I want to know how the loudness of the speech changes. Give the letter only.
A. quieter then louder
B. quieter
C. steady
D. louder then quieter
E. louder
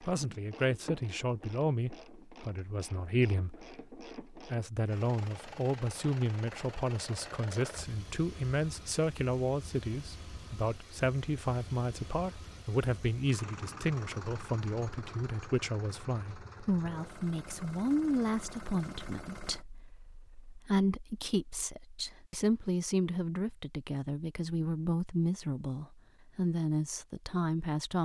C.